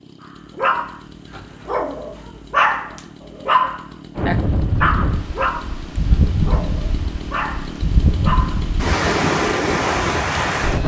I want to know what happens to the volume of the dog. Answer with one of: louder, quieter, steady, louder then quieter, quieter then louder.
louder then quieter.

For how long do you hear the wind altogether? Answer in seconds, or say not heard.
7 s.